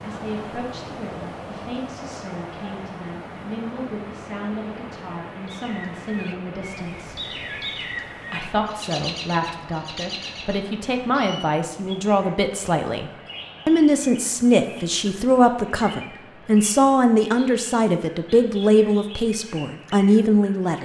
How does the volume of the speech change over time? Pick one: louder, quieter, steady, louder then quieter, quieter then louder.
louder.